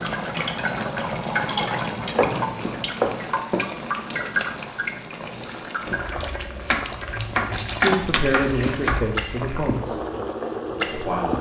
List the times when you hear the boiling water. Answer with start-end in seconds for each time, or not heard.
0.0-11.3.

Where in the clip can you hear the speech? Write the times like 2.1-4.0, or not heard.
7.8-10.0, 10.8-11.3.